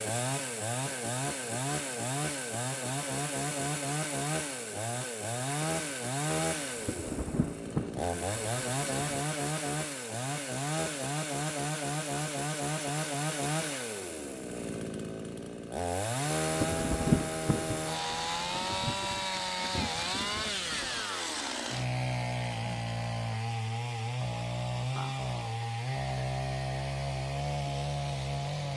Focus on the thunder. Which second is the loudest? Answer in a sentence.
The loudest moment of the thunder is at 17 seconds.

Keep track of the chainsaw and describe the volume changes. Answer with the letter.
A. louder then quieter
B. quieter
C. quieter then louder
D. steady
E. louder
D.